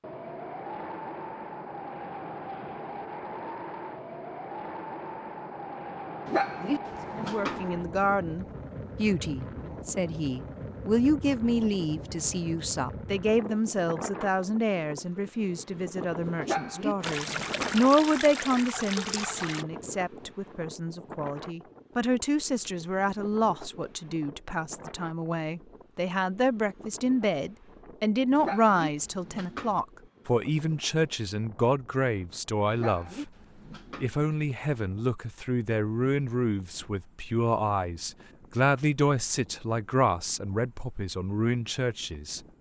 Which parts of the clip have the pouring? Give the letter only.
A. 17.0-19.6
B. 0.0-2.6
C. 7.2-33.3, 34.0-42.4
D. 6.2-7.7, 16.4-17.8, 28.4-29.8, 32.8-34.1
A.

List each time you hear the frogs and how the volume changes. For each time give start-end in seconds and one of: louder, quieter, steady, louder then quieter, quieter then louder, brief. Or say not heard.
not heard.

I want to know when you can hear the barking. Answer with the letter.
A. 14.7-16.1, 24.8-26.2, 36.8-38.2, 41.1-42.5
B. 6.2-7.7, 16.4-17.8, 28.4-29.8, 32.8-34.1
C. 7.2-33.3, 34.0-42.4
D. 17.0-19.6
B.